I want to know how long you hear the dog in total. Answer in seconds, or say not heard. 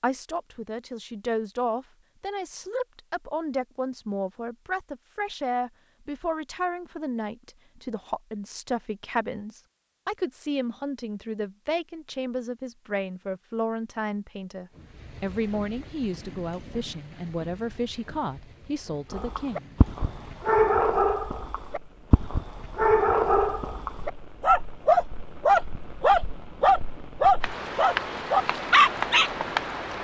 10 s.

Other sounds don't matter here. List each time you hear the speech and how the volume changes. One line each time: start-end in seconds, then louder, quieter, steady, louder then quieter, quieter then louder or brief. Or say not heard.
0.0-19.6 steady.